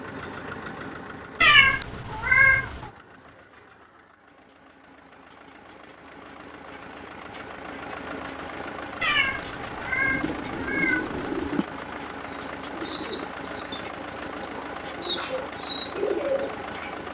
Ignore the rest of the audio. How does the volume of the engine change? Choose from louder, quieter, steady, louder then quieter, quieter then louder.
quieter then louder.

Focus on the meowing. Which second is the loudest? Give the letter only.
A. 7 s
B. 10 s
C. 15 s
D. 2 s
D.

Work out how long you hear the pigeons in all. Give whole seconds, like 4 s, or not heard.
7 s.